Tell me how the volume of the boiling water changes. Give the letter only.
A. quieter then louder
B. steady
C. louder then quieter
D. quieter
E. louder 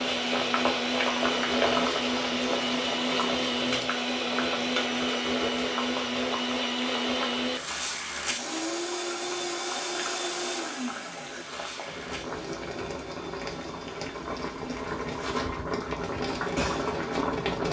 A.